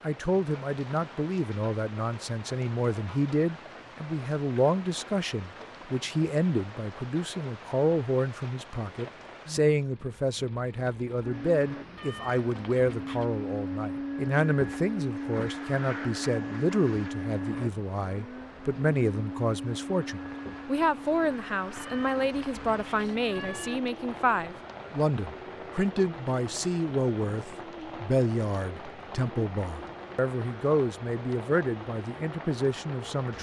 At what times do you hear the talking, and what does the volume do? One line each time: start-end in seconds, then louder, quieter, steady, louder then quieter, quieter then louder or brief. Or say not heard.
0.0-33.3 steady.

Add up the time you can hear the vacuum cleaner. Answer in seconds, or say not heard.
22 s.